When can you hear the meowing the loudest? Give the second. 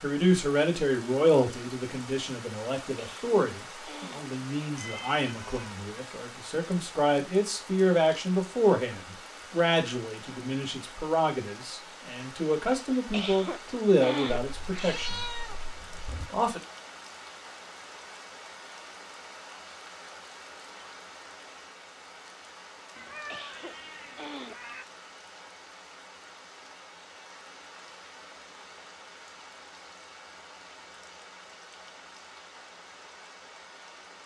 15 s.